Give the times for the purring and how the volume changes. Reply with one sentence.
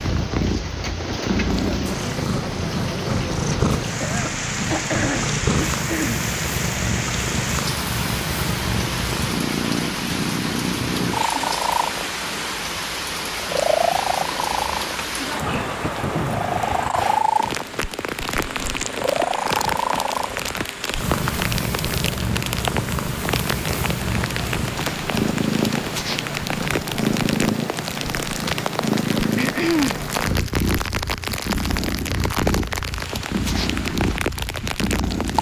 You can hear the purring from 0.0 to 35.3 s, at a steady volume.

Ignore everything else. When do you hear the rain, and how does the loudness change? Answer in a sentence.
You can hear the rain from 0.0 to 35.3 s, at a steady volume.